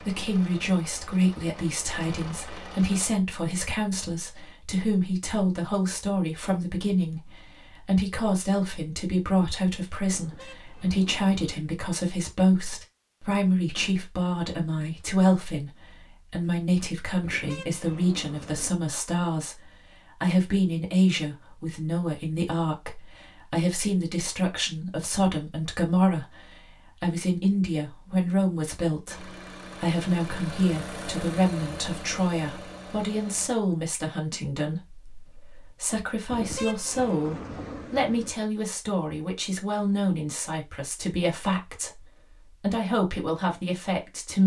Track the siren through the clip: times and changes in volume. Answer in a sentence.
The siren can't be heard in this clip.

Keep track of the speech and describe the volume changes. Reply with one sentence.
The volume of the speech stays about the same.